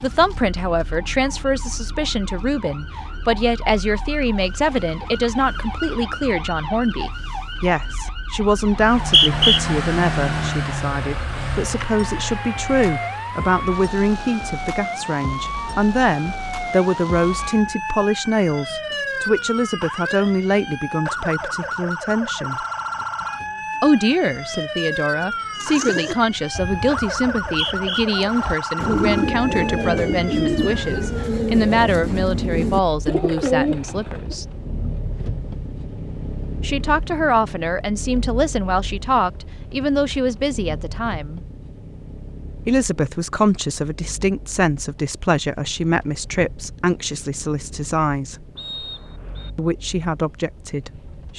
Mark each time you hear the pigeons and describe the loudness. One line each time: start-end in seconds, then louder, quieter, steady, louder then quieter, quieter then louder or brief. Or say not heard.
25.6-34.4 louder.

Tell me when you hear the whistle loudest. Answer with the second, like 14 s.
9 s.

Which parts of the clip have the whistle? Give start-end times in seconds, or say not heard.
8.7-9.6, 27.4-28.1, 48.5-49.5.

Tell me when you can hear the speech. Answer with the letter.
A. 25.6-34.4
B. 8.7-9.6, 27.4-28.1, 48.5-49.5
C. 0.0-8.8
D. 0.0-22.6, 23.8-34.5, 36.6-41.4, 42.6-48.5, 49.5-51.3
D.